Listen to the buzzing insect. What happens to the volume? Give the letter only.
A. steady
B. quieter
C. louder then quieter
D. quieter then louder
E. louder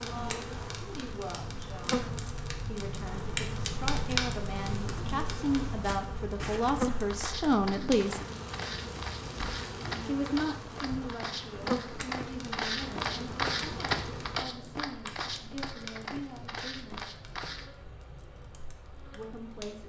B.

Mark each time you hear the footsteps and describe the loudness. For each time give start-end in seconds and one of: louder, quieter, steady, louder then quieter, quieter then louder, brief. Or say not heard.
5.8-17.7 louder then quieter.